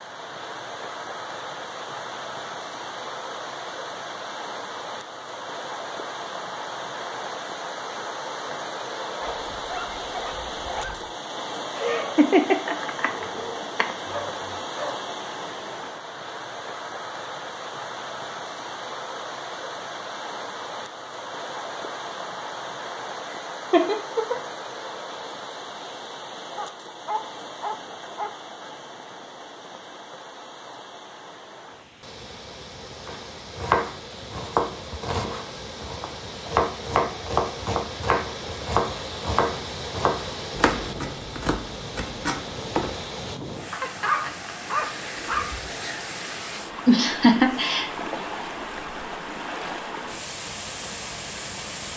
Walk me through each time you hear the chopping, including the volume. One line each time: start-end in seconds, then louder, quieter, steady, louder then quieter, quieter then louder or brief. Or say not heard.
33.0-43.0 quieter.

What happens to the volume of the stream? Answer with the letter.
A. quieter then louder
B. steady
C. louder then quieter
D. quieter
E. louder
B.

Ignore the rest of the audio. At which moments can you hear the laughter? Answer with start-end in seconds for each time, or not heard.
11.8-13.1, 23.3-24.4, 46.9-48.2.